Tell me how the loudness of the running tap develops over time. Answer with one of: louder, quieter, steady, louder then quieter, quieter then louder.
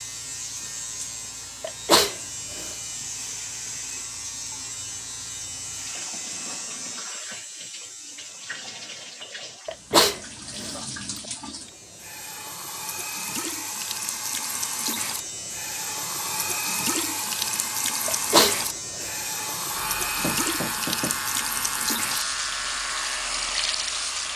louder.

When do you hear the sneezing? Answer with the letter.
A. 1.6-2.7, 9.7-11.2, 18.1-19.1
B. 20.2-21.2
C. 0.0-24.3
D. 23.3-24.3
A.